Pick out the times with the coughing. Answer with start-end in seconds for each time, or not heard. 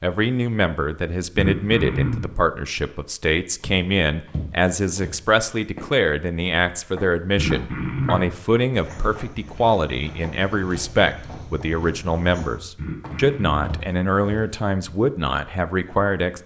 1.4-2.4, 7.3-8.3, 12.8-13.6.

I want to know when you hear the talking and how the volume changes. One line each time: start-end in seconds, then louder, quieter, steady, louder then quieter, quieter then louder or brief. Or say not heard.
0.0-16.4 steady.